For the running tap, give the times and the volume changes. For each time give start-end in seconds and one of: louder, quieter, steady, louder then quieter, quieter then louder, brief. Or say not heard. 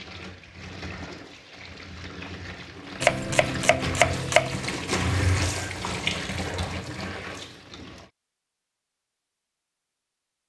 0.0-8.1 louder then quieter.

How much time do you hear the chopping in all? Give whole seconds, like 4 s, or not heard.
2 s.